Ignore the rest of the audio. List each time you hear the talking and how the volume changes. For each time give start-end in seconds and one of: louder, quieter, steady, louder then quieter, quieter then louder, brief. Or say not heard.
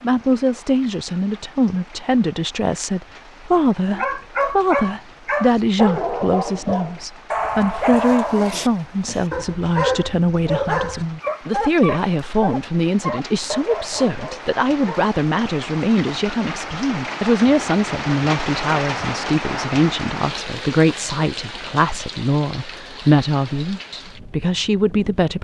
0.0-25.3 steady.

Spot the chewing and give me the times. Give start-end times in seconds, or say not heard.
not heard.